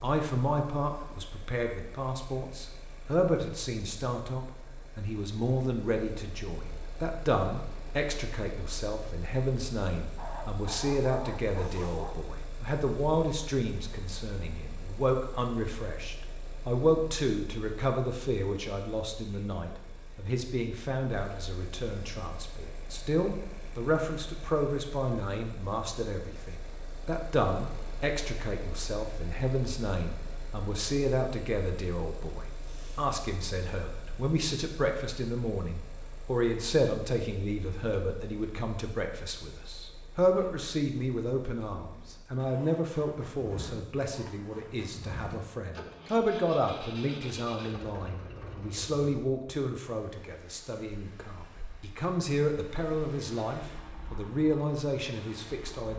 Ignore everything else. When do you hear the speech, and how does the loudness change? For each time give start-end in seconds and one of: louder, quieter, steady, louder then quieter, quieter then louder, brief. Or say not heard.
0.0-55.9 steady.